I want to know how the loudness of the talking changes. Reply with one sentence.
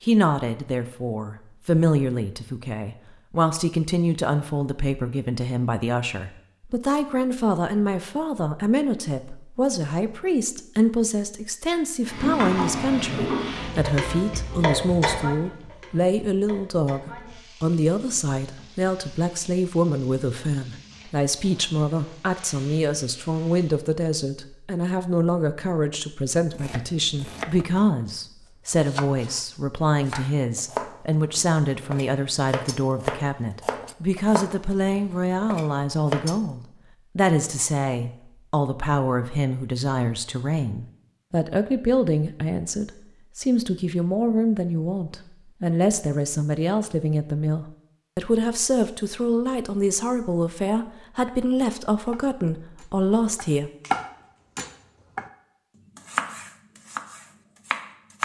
The volume of the talking stays about the same.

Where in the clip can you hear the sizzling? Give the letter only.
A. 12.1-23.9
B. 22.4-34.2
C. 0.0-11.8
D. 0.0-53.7
A.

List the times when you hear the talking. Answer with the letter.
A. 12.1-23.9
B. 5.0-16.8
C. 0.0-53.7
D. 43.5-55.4
C.